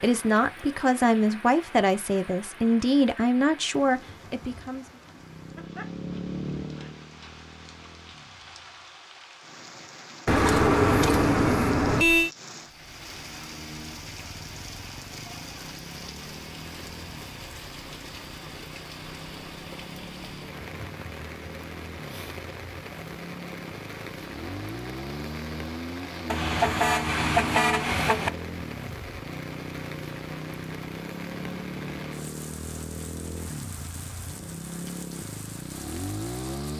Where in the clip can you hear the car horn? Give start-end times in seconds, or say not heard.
10.2-12.3, 26.3-28.3.